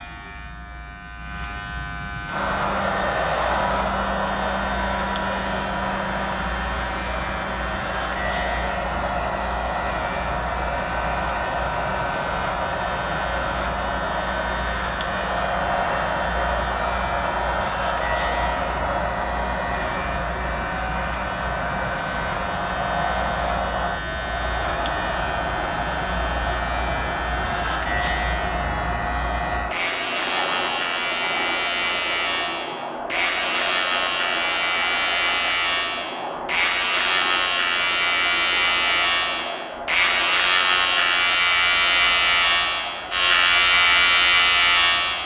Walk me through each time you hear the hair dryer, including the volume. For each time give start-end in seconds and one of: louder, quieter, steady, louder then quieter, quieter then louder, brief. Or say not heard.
2.2-45.2 quieter.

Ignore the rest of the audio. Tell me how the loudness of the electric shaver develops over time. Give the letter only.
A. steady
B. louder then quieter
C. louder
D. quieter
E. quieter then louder
C.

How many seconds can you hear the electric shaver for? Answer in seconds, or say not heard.
45 s.